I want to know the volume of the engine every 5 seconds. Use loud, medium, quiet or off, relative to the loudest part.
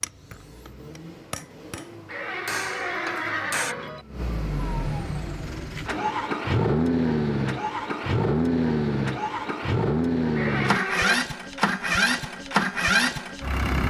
quiet, loud, loud.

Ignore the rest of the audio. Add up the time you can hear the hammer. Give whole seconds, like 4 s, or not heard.
4 s.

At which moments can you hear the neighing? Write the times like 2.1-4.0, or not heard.
2.0-4.0, 10.3-11.2.